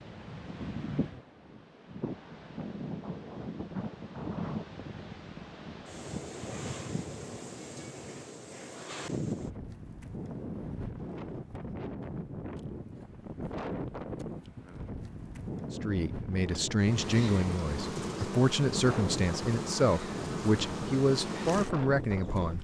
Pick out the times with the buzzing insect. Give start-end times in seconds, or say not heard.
16.8-22.5.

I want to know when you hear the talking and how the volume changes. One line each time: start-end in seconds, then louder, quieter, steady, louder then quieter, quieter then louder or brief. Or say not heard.
15.7-22.5 steady.